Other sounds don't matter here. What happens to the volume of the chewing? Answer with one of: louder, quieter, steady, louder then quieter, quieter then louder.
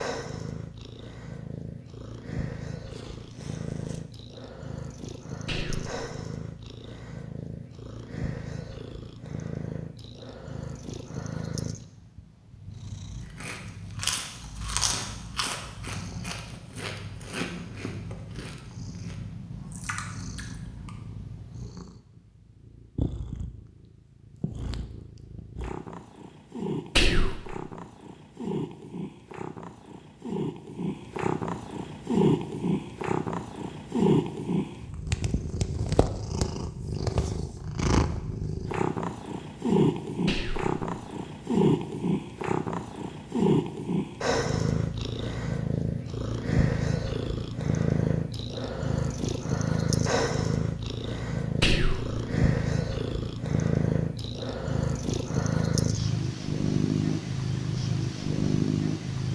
quieter.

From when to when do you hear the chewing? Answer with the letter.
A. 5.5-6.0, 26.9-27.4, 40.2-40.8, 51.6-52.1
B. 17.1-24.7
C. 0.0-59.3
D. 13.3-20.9
D.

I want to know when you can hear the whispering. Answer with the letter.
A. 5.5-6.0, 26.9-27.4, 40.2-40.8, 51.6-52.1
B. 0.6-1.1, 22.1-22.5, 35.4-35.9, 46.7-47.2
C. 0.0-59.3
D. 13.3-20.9
A.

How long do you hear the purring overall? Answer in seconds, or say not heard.
59 s.